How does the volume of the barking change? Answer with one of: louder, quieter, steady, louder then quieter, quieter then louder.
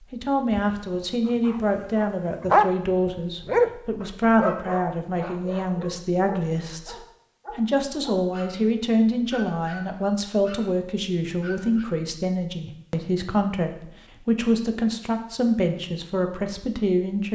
quieter.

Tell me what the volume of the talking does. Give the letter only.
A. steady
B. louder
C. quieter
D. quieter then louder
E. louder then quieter
A.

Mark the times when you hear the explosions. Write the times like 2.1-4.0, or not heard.
not heard.